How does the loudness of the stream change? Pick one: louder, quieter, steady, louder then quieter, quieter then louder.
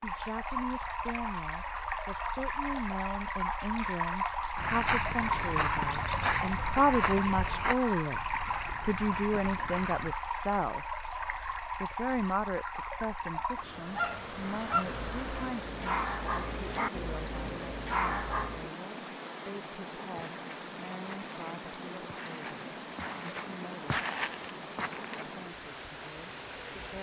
quieter.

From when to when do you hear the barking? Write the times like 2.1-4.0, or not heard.
13.3-18.7.